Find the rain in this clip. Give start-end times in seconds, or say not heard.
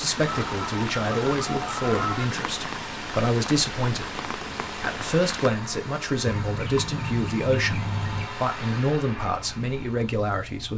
0.0-5.5.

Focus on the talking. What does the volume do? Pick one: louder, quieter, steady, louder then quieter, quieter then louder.
steady.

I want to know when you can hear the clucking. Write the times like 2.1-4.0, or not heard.
0.2-2.3, 6.2-8.2.